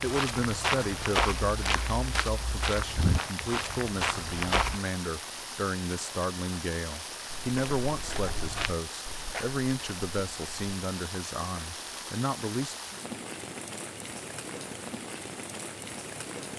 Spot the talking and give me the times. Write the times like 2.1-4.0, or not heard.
0.0-12.8.